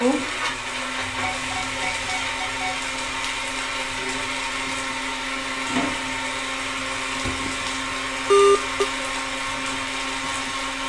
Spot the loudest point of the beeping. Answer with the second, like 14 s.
8 s.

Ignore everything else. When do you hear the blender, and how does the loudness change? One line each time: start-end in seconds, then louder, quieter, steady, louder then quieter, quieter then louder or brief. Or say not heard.
0.0-10.8 steady.